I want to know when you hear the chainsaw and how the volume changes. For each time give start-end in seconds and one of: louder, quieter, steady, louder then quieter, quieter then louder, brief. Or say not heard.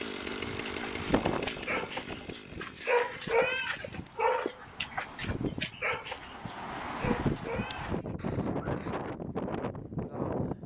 0.0-4.3 quieter.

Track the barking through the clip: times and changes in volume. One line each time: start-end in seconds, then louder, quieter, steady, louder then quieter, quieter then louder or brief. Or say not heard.
0.5-8.9 louder then quieter.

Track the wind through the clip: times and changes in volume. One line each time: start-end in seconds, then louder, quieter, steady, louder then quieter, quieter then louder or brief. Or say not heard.
0.0-10.6 quieter then louder.